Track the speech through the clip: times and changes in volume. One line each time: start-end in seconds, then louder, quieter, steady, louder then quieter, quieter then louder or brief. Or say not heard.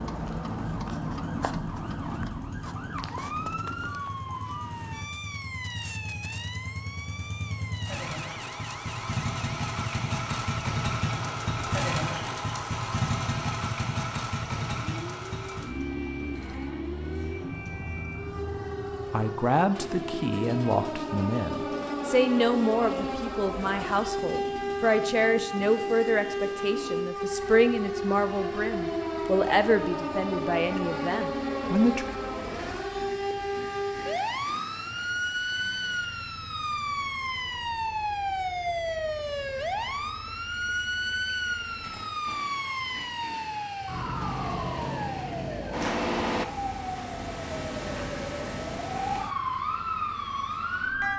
19.1-32.0 steady.